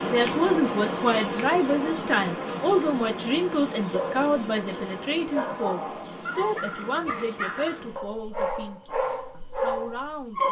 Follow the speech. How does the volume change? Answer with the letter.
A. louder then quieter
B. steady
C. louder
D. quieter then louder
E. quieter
E.